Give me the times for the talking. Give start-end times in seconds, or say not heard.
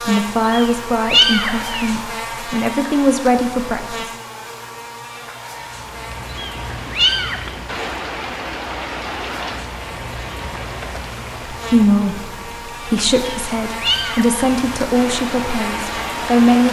0.1-4.1, 11.5-16.6.